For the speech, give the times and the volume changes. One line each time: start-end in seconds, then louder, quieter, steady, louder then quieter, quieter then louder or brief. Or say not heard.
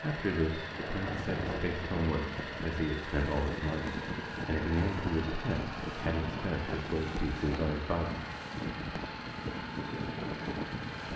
0.0-8.1 steady.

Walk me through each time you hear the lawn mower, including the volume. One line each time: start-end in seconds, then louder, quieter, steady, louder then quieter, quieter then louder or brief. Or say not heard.
0.0-11.1 steady.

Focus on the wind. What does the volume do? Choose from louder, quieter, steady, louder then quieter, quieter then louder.
steady.